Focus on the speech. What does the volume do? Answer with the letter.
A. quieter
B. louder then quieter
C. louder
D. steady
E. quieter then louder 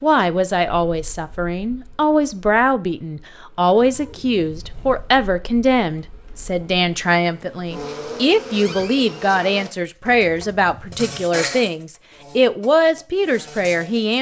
D.